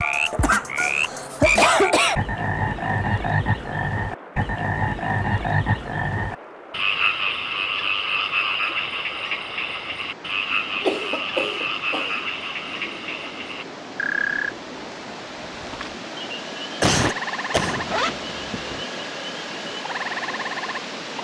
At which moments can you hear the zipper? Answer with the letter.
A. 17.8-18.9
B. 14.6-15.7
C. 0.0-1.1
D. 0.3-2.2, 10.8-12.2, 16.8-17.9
A.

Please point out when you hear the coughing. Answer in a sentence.
The coughing can be heard from 0.3 to 2.2 s, from 10.8 to 12.2 s and from 16.8 to 17.9 s.